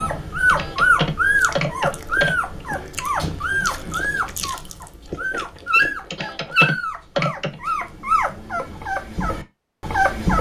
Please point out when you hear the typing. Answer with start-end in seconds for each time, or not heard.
0.5-2.4, 6.1-7.5.